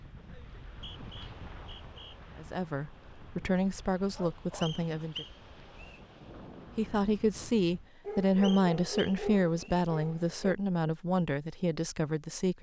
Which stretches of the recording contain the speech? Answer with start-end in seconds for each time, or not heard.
2.4-5.2, 6.8-12.5.